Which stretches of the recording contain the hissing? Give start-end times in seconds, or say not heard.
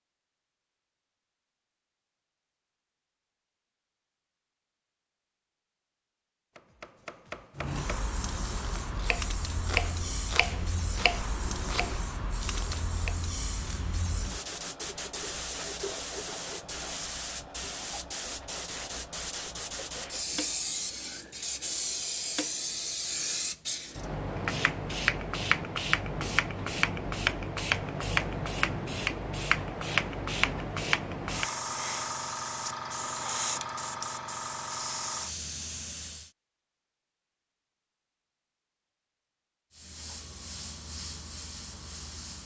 7.5-36.3, 39.7-42.4.